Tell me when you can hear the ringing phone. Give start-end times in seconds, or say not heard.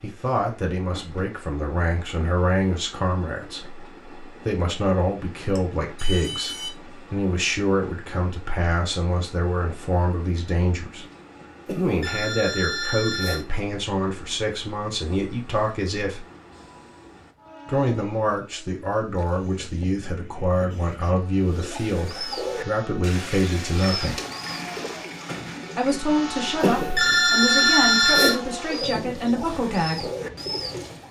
5.5-6.7, 11.7-13.4, 26.6-28.4.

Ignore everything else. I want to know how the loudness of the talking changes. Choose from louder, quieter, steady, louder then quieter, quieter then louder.
steady.